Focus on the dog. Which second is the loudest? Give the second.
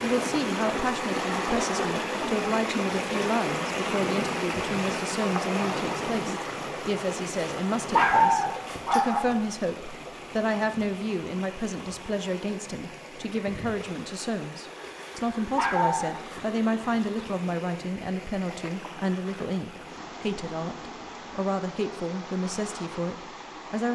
8 s.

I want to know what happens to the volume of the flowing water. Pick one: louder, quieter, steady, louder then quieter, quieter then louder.
quieter.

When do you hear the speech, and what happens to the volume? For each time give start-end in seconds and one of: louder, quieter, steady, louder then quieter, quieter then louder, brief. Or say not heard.
0.0-23.8 steady.